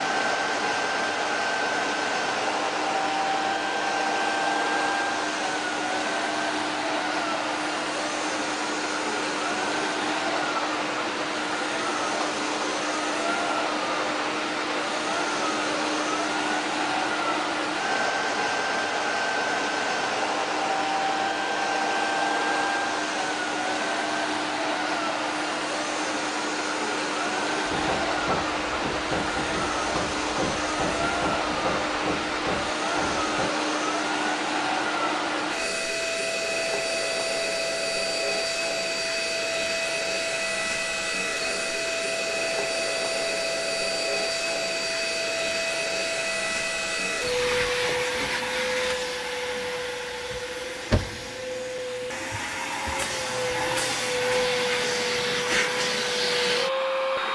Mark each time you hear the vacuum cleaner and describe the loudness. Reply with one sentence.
You can hear the vacuum cleaner from 0.0 to 57.2 s, at a steady volume.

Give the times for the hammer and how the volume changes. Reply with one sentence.
The hammer can be heard from 27.6 to 33.5 s, at a steady volume.